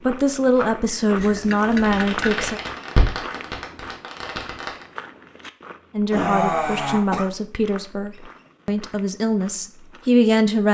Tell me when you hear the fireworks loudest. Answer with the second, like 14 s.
3 s.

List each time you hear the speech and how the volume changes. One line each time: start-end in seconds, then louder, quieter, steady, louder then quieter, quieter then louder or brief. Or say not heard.
0.1-2.6 brief
6.0-10.6 quieter then louder.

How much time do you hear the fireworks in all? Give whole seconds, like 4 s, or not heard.
3 s.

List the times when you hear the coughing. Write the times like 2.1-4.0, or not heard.
1.1-2.5, 6.1-7.3.